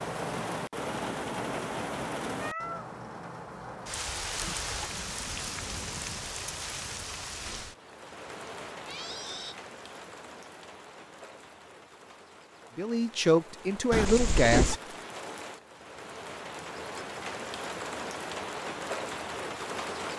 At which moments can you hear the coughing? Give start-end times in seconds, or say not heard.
not heard.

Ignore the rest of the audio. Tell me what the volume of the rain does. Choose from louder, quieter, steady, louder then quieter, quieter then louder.
quieter then louder.